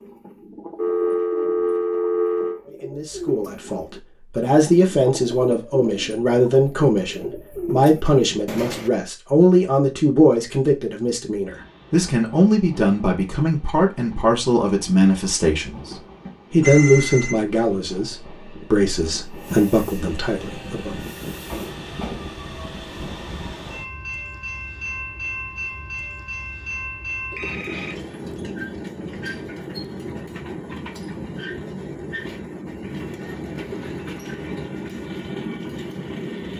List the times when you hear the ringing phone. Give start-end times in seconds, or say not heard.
0.8-2.6, 16.6-17.4, 27.3-27.9.